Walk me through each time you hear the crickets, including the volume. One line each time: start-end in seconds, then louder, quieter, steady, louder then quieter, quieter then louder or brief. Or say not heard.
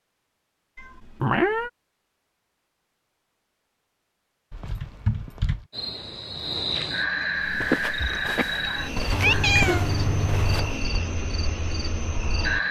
5.7-12.6 quieter.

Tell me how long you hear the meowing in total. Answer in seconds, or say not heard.
4 s.